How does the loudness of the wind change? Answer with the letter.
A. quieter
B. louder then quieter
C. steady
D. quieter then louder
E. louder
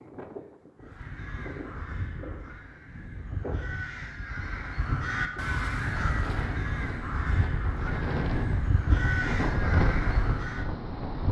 E.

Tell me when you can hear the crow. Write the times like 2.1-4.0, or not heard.
0.8-10.7.